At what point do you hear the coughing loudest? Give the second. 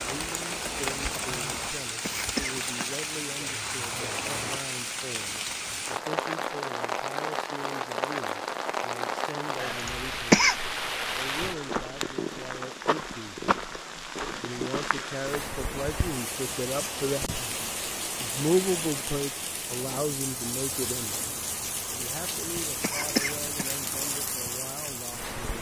10 s.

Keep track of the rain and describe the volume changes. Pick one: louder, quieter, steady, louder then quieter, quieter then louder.
steady.